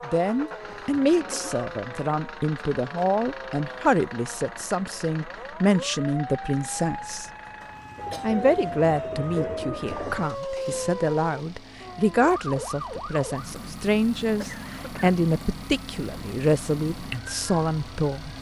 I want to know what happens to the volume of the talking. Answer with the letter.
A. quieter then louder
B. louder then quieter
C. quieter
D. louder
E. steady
E.